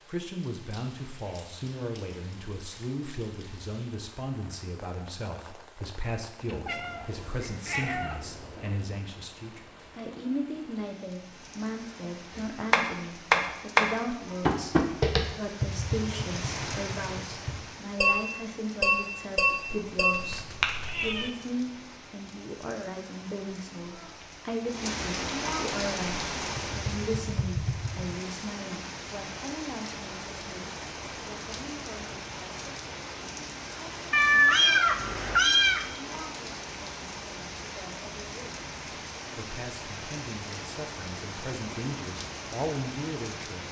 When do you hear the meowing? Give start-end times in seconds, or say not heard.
6.5-8.8, 19.9-21.3, 34.1-35.9.